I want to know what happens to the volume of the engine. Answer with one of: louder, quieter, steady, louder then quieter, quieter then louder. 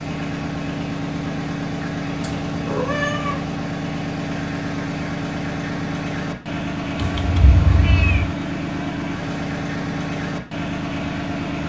steady.